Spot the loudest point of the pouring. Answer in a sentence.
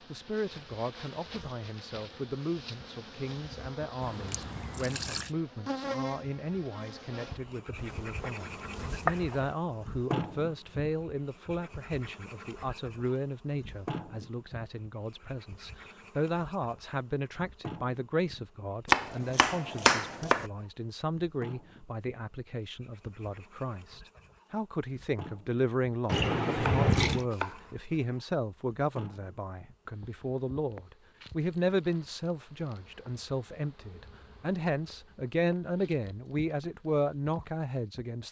The loudest moment of the pouring is at 27 seconds.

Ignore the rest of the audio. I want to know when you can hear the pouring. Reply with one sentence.
You can hear the pouring from 4.0 to 5.3 s and from 26.1 to 27.2 s.